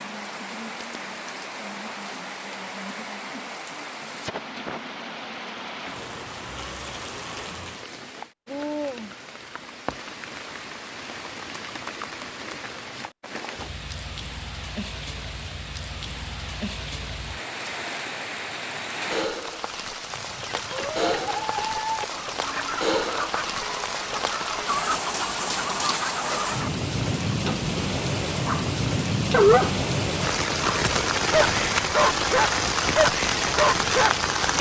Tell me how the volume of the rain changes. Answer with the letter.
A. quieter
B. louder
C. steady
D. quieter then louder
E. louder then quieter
B.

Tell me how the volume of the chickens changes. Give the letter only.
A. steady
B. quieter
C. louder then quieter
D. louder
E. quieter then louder
A.